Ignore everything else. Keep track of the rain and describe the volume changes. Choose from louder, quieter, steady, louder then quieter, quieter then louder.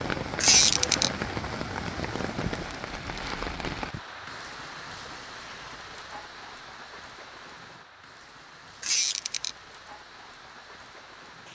quieter.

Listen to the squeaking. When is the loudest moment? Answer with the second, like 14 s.
1 s.